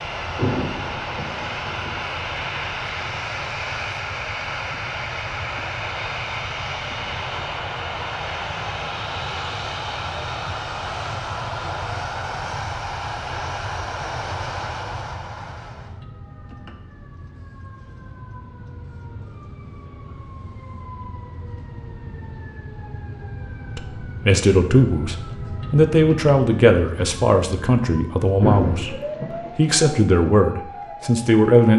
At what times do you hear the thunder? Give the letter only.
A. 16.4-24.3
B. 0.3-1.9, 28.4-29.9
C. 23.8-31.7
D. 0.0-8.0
B.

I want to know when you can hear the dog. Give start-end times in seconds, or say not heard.
not heard.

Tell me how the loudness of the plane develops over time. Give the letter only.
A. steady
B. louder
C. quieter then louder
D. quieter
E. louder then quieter
A.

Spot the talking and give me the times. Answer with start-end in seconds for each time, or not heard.
23.8-31.7.